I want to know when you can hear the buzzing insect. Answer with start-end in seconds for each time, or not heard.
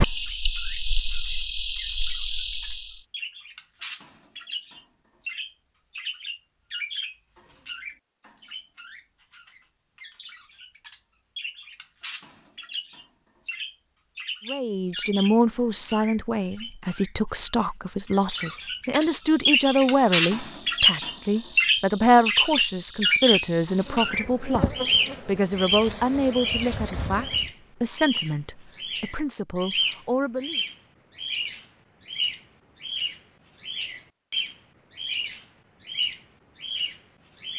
0.0-3.0, 19.1-27.5.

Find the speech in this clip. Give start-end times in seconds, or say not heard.
14.4-30.6.